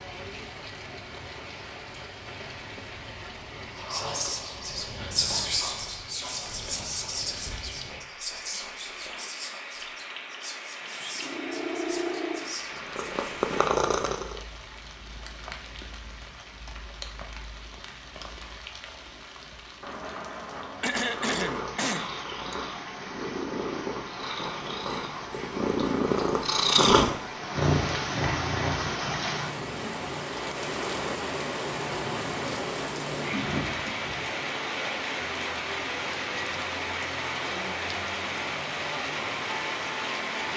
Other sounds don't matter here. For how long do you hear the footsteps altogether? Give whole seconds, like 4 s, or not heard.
not heard.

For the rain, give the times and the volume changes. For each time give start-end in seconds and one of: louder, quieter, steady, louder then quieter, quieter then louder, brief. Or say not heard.
0.0-40.5 louder.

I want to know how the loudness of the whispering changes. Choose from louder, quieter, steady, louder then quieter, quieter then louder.
quieter.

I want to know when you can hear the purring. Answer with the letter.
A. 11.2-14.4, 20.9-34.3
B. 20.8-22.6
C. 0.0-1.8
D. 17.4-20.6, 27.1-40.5
A.